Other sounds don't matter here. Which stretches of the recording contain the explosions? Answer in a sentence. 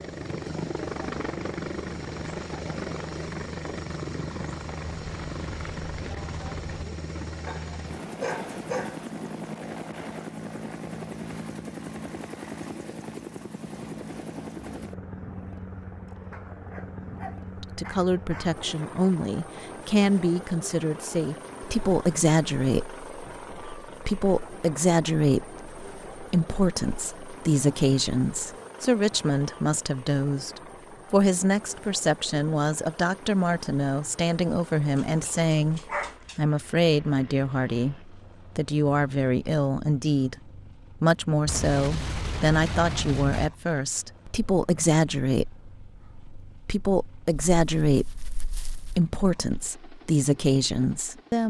The explosions can be heard from 4.8 to 6.8 s and from 41.5 to 43.5 s.